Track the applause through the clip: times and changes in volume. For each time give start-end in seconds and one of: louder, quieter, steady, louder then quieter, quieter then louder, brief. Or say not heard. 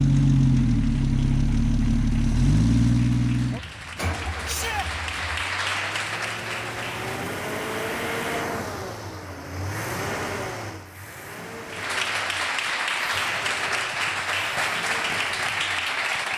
0.0-7.3 louder
11.7-16.3 steady.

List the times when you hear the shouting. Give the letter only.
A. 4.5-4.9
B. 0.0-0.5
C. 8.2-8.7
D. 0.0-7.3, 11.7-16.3
A.